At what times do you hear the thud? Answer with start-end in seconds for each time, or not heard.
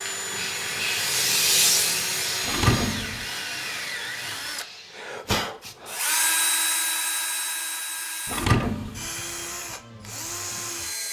2.5-3.2, 8.2-9.1.